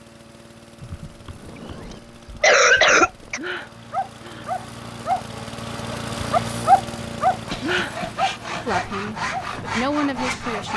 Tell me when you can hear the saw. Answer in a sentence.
The saw can be heard from 7.5 to 10.7 s.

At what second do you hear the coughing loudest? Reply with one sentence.
The volume of the coughing peaks at 3 seconds.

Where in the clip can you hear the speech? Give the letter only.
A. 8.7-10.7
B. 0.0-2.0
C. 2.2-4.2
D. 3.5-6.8
A.